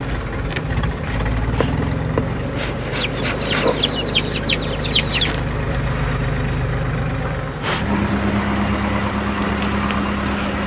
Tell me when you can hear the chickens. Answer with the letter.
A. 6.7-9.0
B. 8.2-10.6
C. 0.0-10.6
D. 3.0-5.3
D.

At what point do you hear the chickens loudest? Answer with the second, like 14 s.
5 s.